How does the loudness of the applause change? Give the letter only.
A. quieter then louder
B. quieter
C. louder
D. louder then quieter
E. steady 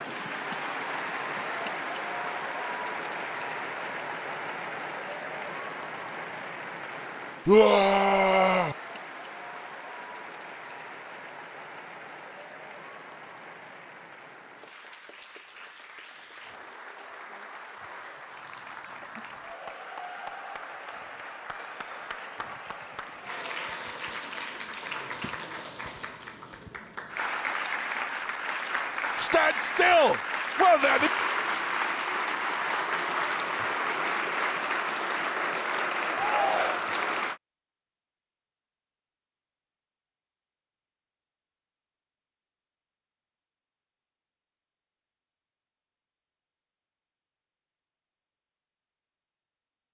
A.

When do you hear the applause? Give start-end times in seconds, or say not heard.
0.0-37.4.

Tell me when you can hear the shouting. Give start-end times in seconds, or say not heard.
7.5-8.8, 29.1-31.1, 36.1-36.9.